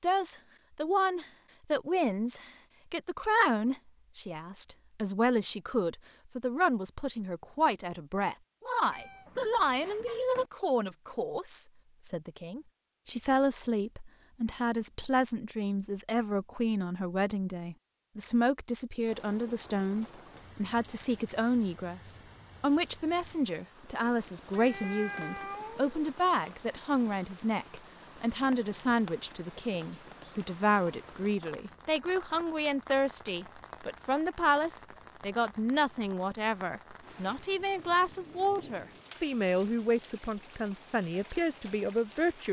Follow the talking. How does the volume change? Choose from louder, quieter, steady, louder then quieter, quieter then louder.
steady.